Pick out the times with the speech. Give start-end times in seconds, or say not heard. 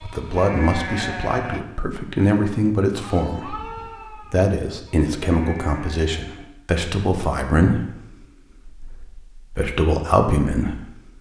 0.0-8.1, 8.7-10.9.